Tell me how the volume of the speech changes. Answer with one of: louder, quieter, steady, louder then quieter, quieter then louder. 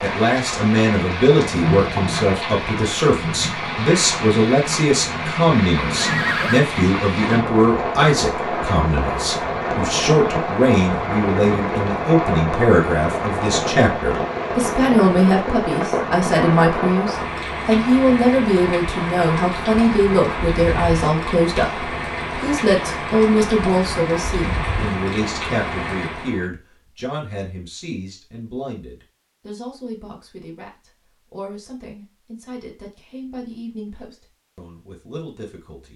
quieter.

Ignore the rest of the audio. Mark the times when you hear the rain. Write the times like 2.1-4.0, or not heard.
0.0-26.4.